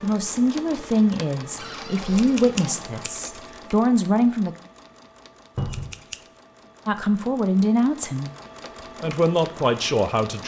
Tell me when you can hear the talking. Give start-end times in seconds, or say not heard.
0.0-4.5, 6.8-8.3, 9.0-10.4.